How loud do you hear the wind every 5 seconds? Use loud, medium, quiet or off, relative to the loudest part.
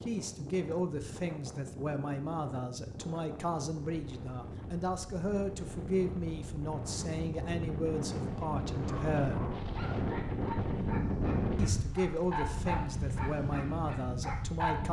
medium, loud, loud.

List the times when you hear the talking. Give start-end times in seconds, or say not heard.
0.0-9.6, 11.6-14.8.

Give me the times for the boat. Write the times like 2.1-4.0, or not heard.
not heard.